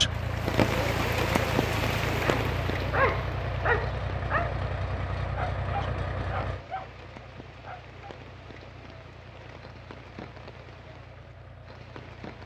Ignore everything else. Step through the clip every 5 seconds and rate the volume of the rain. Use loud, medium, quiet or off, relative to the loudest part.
loud, quiet, quiet.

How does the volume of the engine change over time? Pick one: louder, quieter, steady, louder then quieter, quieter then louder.
quieter.